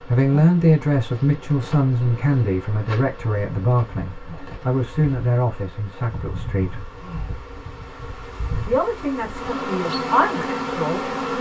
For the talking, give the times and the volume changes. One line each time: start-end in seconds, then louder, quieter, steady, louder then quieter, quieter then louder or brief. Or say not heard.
0.1-6.9 quieter
8.7-11.3 brief.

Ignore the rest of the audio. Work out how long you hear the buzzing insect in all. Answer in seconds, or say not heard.
11 s.